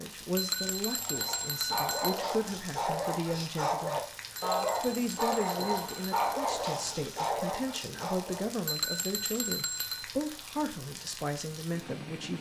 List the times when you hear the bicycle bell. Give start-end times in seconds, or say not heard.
0.3-2.2, 4.3-6.3, 8.7-10.1.